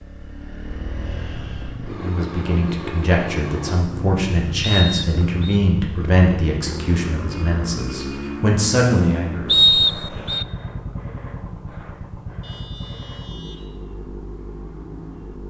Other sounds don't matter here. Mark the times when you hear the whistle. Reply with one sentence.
The whistle can be heard from 4.6 to 5.6 s and from 9.4 to 10.4 s.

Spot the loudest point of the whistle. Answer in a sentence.
The loudest moment of the whistle is at 10 seconds.